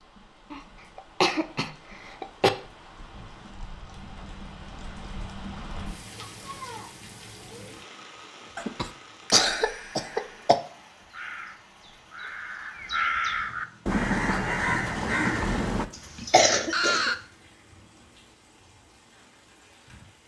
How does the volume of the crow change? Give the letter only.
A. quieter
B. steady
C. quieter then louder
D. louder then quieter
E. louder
D.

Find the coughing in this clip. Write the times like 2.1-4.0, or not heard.
0.5-2.5, 8.6-10.6, 15.9-17.1.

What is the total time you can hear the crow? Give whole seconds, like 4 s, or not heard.
6 s.